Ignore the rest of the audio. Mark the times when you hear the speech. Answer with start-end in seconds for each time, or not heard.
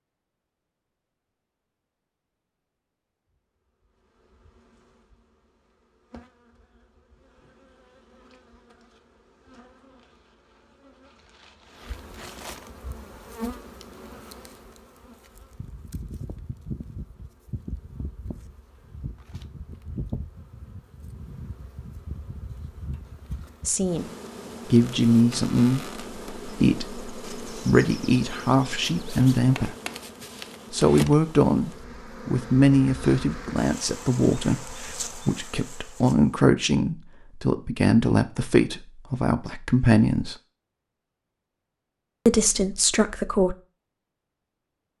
23.6-24.1, 24.7-29.8, 30.7-40.4, 42.2-43.5.